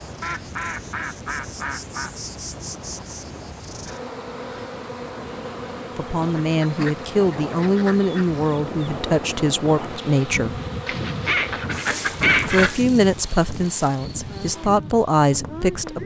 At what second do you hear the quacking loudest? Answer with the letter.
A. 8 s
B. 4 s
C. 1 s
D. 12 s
D.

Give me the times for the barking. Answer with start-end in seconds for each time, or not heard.
not heard.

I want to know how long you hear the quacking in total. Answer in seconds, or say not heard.
6 s.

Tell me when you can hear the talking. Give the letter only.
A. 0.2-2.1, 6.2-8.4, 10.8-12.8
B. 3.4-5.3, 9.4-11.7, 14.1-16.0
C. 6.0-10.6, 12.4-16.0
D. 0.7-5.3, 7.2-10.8
C.